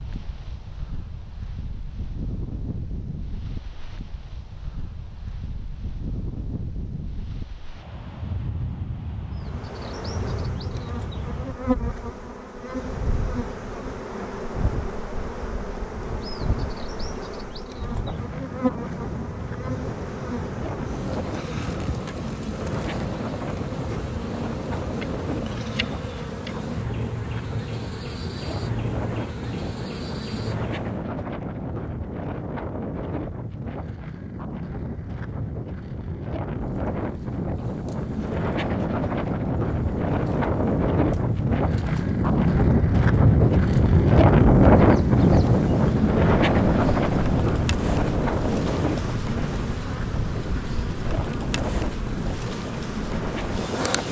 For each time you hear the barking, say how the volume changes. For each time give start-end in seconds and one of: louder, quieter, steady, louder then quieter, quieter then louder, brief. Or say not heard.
not heard.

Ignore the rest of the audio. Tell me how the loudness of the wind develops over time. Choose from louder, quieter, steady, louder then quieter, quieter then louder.
louder.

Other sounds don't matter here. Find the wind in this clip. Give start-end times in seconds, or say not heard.
0.0-54.0.